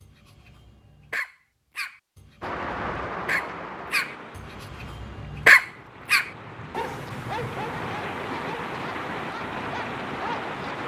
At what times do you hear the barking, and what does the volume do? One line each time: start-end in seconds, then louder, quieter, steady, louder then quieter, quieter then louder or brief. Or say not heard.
0.0-10.6 louder then quieter.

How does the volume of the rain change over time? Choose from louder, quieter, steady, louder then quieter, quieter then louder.
quieter then louder.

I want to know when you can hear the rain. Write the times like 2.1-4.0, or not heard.
2.4-10.8.